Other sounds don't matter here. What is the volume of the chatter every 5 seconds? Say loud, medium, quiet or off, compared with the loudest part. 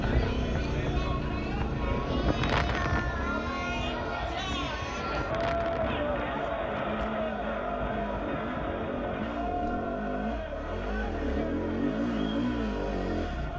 loud, loud, medium.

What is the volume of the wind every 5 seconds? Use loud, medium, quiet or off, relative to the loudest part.
loud, medium, off.